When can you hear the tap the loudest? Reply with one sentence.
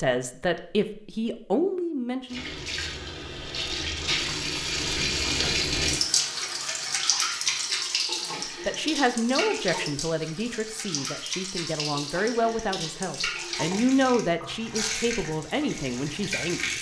The volume of the tap peaks at 6 seconds.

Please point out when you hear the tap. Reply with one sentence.
The tap can be heard from 2.2 to 16.7 s.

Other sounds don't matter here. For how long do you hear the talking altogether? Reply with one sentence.
You can hear the talking for 11 seconds altogether.